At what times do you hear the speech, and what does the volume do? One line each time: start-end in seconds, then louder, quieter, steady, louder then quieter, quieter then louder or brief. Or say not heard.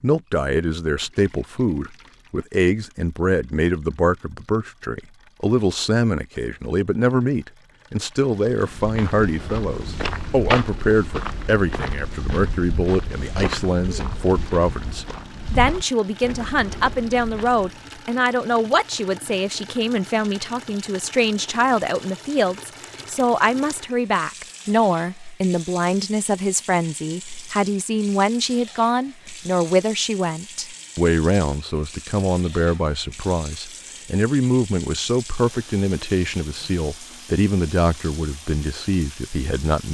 0.0-39.8 steady.